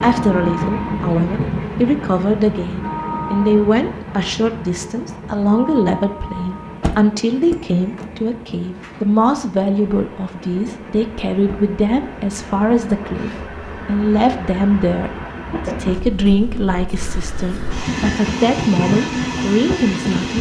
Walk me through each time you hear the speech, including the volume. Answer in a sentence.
The speech can be heard from 0.0 to 20.3 s, at a steady volume.